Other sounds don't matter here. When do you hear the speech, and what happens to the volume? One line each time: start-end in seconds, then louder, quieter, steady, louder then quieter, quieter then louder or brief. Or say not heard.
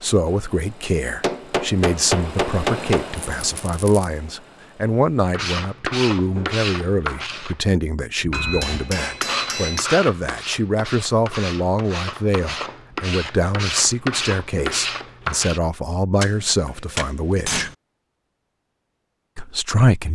0.0-17.7 steady
19.4-20.1 brief.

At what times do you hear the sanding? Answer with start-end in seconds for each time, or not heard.
5.3-15.6.